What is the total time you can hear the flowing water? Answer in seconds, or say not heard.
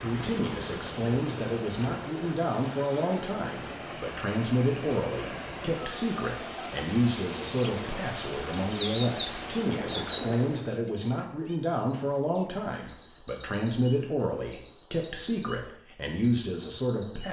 11 s.